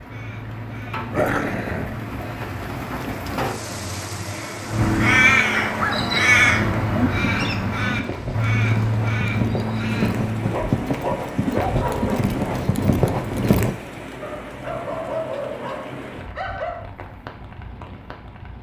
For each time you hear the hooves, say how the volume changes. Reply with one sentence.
You can hear the hooves from 5.8 to 13.8 s, getting louder.